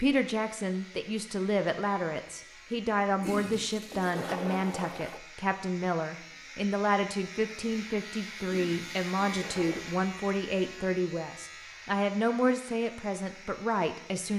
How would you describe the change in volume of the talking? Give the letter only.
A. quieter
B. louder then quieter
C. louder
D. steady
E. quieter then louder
D.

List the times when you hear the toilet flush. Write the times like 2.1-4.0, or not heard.
3.2-5.2, 8.4-9.8.